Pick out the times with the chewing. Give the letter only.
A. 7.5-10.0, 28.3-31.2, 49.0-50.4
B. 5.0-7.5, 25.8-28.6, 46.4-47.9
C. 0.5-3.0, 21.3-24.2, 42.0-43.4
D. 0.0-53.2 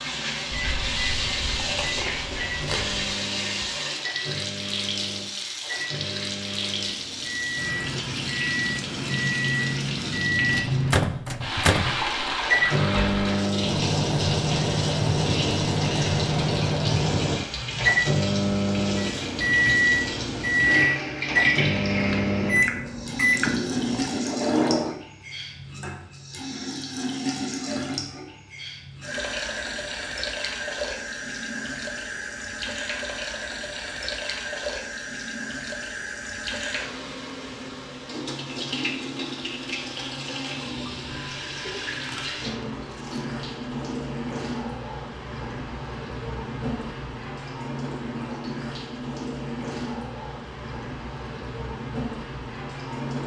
C.